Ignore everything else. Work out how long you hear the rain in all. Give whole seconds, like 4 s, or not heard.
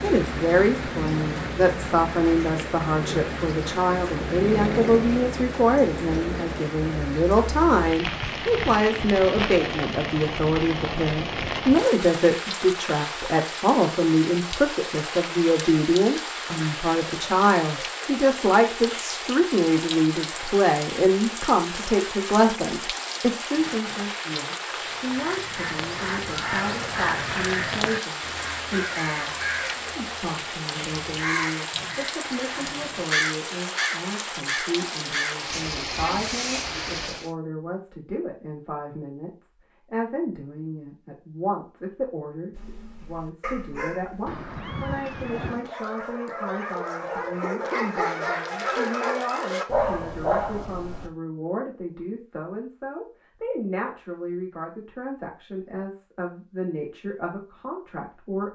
37 s.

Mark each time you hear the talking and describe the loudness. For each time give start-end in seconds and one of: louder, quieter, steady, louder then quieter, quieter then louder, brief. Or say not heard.
0.0-58.5 quieter.